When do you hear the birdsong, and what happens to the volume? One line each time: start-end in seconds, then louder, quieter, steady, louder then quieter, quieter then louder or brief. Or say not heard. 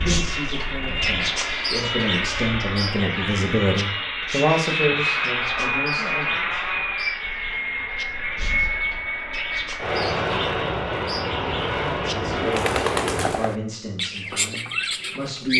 0.0-15.5 quieter then louder.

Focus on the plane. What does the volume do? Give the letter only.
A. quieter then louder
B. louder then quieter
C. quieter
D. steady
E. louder
D.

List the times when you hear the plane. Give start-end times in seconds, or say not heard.
0.0-13.6.